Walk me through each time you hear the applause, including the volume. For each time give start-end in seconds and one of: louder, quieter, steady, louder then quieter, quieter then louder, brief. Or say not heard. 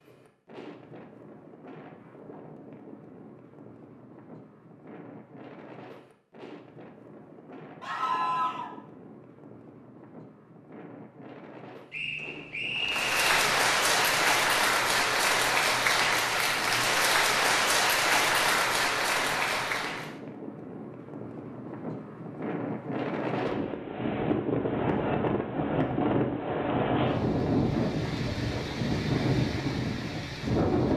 12.8-20.2 steady.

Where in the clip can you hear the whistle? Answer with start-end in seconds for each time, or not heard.
11.9-13.4.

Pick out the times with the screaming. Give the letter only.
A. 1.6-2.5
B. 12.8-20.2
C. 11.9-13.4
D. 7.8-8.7
D.